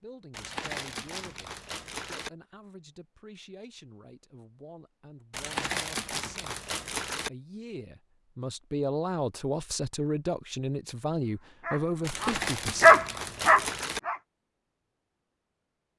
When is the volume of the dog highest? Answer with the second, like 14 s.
13 s.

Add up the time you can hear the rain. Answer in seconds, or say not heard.
not heard.